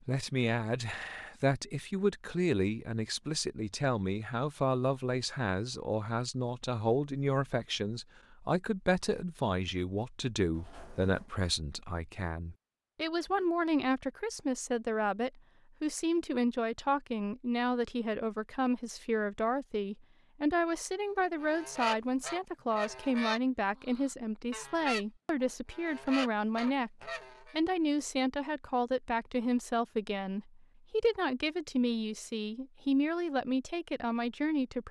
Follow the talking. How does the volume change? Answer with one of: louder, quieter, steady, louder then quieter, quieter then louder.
steady.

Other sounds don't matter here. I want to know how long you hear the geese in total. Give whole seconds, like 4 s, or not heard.
6 s.